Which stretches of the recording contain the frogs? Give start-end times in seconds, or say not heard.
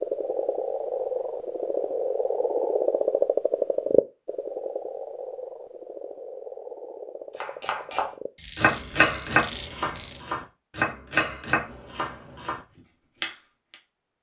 0.0-10.2.